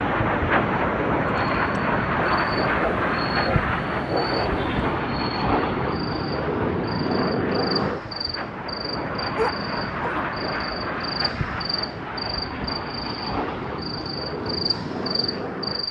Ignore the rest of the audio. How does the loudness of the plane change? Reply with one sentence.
The loudness of the plane goes down.